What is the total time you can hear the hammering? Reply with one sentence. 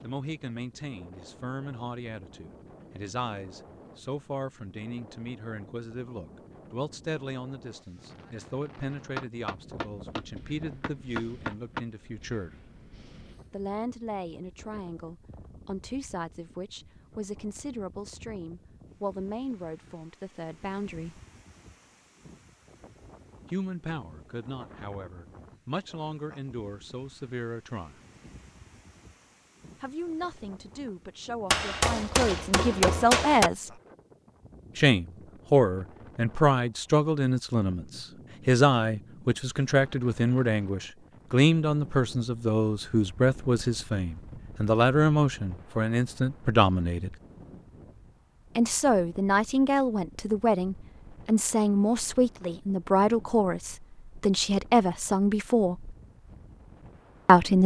You can hear the hammering for 5 seconds altogether.